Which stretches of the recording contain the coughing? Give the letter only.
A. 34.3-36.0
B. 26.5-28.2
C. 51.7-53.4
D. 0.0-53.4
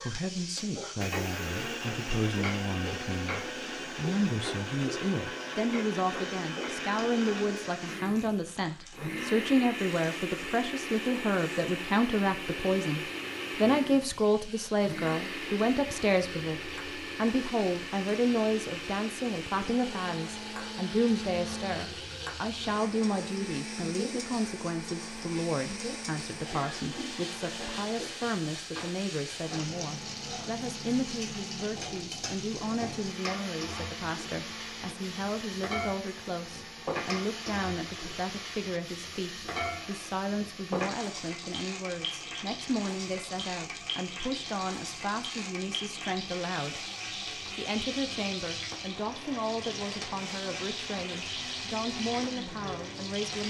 B.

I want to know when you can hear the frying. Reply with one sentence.
The frying can be heard from 0.0 to 53.4 s.